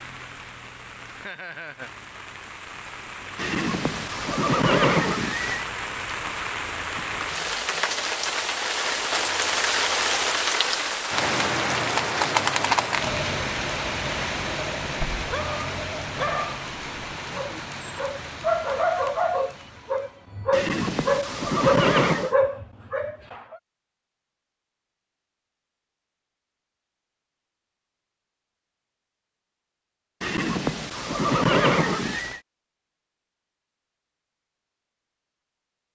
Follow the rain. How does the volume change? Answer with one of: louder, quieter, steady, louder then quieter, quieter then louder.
louder then quieter.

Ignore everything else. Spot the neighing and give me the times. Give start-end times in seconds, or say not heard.
3.4-5.7, 20.5-22.4, 30.2-32.4.